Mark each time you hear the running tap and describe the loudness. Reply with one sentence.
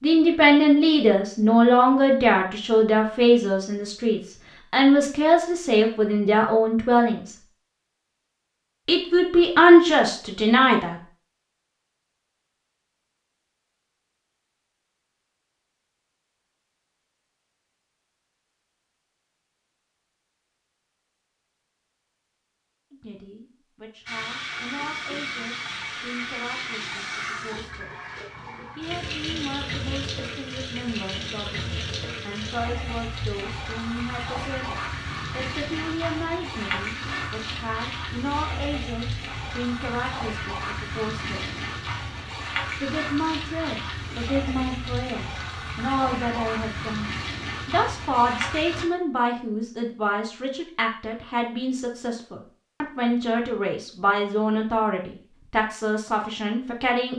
The running tap can be heard from 24.1 to 48.9 s, at a steady volume.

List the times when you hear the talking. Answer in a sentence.
The talking can be heard from 0.0 to 7.3 s, from 8.8 to 10.9 s, from 22.9 to 28.1 s, from 28.8 to 41.6 s and from 42.8 to 57.1 s.